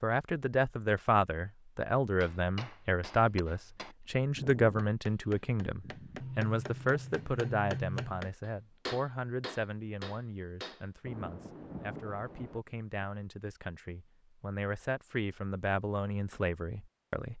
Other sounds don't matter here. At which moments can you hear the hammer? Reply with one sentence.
The hammer can be heard from 2.2 to 10.8 s.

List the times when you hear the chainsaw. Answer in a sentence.
You can't hear the chainsaw here.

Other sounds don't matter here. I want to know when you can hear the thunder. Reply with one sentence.
The thunder can be heard from 11.1 to 13.1 s.